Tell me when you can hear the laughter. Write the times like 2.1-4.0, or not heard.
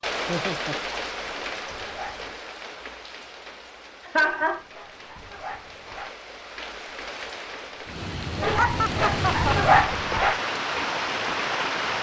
0.2-0.8, 4.0-4.7, 8.5-9.7.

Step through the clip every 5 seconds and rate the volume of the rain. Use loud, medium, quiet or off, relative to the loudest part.
medium, medium, loud.